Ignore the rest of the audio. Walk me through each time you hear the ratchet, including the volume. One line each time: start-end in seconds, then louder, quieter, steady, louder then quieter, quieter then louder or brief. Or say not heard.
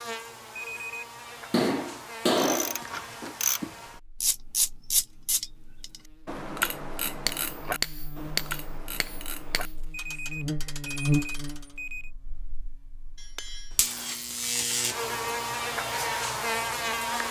2.4-11.8 quieter.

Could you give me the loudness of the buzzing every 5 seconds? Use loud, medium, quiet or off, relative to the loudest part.
quiet, quiet, loud, loud.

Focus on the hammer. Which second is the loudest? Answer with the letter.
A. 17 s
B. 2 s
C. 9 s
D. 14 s
B.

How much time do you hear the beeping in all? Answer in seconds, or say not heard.
3 s.